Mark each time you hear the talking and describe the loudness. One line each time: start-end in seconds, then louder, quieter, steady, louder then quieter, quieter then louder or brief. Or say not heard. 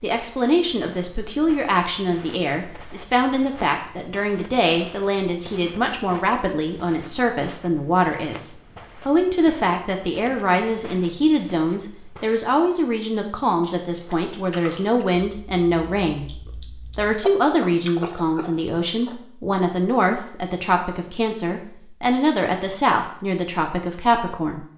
0.0-24.6 steady.